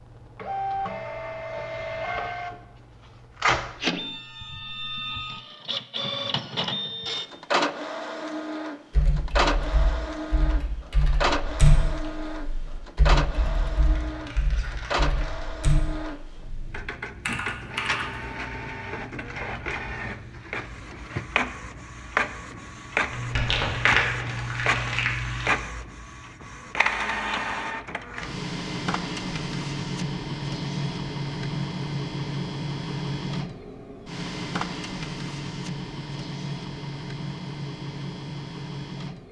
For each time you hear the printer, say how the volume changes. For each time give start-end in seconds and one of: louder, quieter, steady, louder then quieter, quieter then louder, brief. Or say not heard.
0.0-39.2 steady.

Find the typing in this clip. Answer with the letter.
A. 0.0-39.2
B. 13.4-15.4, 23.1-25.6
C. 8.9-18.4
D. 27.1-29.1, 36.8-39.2
C.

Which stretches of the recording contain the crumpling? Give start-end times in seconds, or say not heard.
13.4-15.4, 23.1-25.6.